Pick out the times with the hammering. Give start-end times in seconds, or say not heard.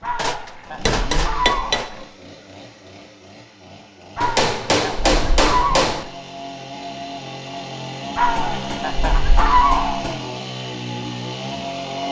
0.1-1.9, 4.2-6.0, 8.3-10.3.